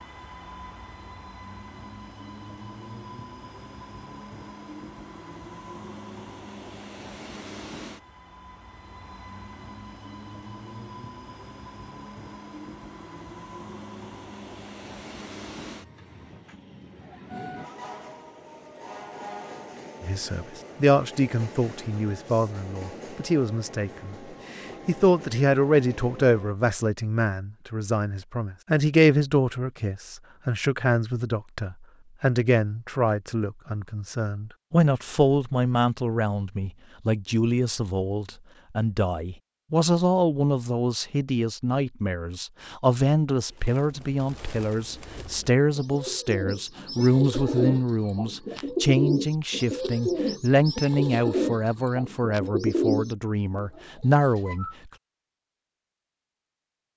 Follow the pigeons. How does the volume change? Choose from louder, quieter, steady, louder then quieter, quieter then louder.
louder.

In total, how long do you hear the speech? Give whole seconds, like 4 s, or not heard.
35 s.